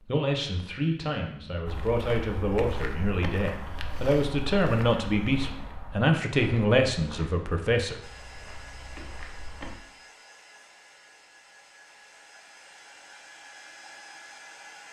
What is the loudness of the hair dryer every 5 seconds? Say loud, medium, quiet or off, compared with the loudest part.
off, loud, loud.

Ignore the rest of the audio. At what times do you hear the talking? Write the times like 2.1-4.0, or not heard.
0.1-8.0.